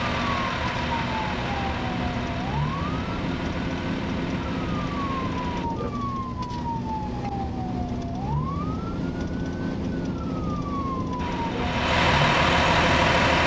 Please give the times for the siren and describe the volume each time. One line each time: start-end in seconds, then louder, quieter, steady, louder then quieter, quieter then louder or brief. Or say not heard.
0.0-13.4 steady.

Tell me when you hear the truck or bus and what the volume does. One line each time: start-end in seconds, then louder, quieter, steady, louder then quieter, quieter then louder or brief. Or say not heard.
0.0-5.7 quieter
11.2-13.4 brief.